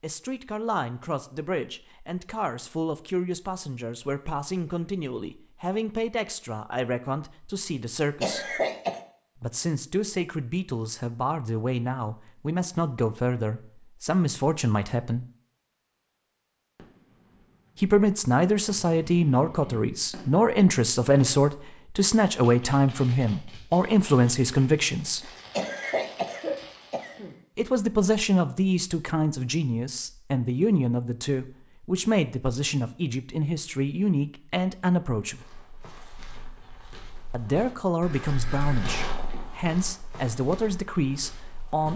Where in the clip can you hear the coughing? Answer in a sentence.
The coughing can be heard from 8.2 to 9.0 s and from 25.5 to 27.4 s.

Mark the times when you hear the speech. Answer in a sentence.
The speech can be heard from 0.0 to 8.6 s, from 9.3 to 15.2 s, from 17.8 to 25.3 s, from 27.6 to 35.4 s and from 37.3 to 41.9 s.